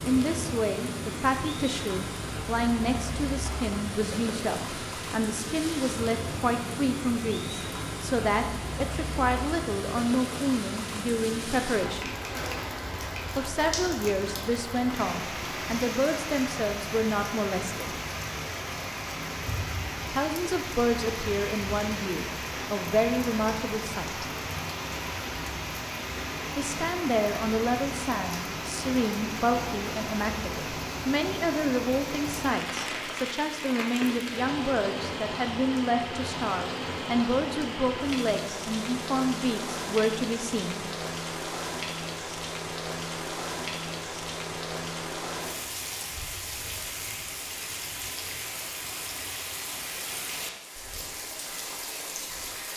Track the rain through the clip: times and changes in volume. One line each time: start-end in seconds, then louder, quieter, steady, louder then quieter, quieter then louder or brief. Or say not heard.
0.0-52.7 steady.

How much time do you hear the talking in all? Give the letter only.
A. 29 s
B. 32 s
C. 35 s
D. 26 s
C.